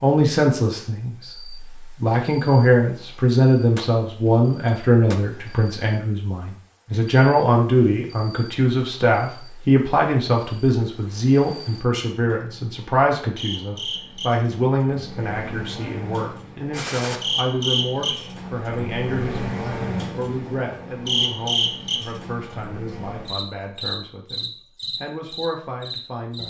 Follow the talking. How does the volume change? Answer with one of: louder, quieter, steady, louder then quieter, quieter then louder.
quieter.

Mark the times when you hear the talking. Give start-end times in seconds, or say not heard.
0.0-26.4.